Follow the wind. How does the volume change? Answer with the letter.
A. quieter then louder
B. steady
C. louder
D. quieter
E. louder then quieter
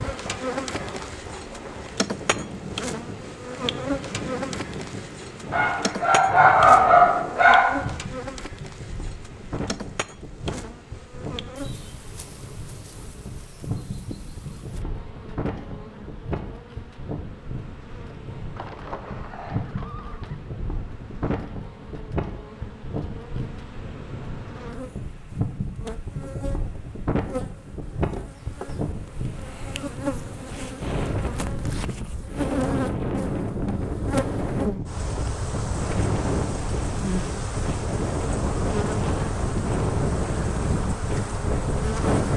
C.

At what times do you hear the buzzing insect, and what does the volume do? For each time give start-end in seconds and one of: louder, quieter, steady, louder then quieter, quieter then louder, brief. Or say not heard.
0.0-42.3 quieter then louder.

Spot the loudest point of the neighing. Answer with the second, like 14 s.
19 s.